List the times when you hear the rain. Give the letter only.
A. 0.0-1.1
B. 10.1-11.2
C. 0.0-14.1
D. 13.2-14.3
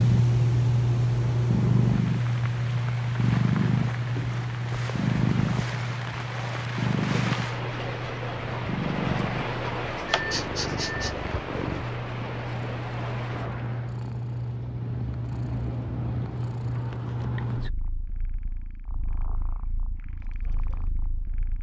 C.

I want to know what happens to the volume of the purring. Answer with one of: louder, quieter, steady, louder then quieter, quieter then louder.
quieter.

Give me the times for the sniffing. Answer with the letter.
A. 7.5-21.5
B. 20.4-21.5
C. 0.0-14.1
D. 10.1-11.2
D.